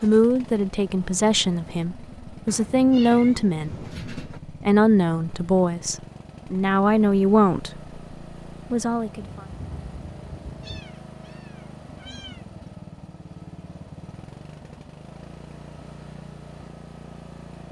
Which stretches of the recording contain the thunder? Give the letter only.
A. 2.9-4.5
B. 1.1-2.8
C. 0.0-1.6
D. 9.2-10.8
D.